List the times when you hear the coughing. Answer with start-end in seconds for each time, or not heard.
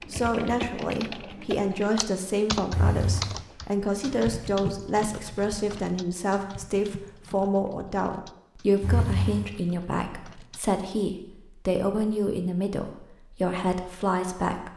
2.7-3.3, 8.8-9.4.